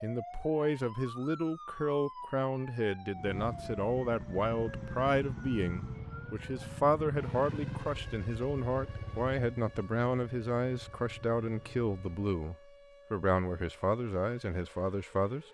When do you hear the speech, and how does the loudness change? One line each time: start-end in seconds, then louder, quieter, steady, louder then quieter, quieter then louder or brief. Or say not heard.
0.0-15.4 steady.